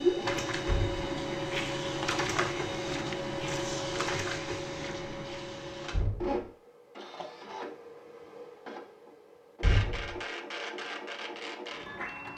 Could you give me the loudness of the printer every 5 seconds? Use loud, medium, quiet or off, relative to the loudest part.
loud, medium, medium.